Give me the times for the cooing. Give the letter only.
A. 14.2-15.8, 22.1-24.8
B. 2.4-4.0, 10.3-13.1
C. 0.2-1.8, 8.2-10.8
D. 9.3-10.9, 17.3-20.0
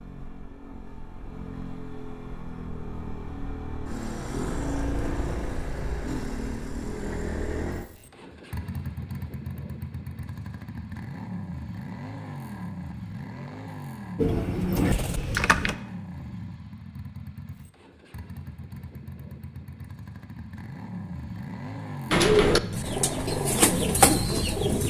A.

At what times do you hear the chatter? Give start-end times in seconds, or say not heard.
not heard.